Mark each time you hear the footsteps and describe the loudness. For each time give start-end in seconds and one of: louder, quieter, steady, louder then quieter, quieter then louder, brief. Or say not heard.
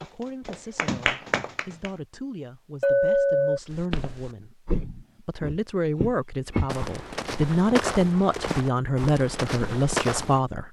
3.7-10.4 steady.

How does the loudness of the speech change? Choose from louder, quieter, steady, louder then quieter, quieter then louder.
louder.